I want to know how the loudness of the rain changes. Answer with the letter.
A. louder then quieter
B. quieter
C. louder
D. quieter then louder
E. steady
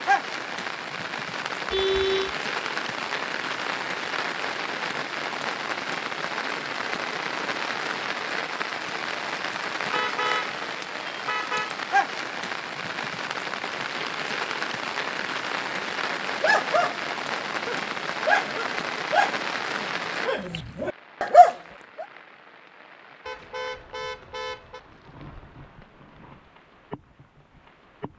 B.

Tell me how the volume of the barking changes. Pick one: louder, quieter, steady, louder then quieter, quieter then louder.
quieter then louder.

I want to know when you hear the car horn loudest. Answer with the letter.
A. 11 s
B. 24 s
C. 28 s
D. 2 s
D.